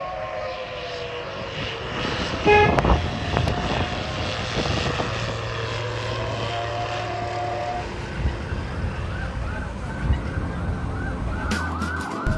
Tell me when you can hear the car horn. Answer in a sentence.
The car horn can be heard from 2.4 to 3.5 s.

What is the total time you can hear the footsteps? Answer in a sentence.
The footsteps can't be heard in this clip.